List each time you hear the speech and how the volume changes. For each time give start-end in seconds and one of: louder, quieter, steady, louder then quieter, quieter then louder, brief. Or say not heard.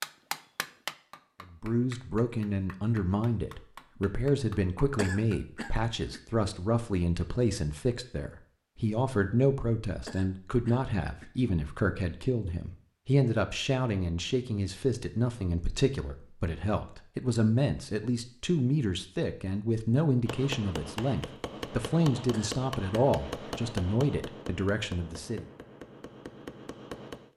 1.5-25.4 steady.